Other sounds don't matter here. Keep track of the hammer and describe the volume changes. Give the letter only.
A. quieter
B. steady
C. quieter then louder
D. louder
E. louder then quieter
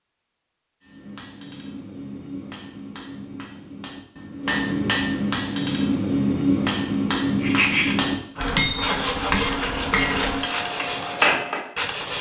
D.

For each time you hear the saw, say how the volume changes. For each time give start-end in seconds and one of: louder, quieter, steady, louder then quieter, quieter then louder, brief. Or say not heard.
7.4-12.1 steady.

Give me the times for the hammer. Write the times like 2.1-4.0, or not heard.
0.8-11.7.